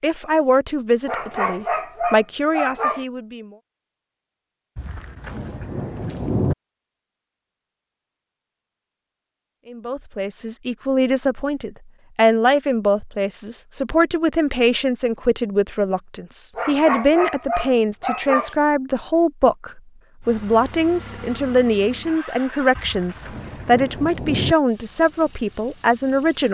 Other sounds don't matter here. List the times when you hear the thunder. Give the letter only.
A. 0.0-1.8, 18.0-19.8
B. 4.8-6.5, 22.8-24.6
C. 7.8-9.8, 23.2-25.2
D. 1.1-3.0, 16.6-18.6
B.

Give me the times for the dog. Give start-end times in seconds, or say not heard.
1.1-3.0, 16.6-18.6.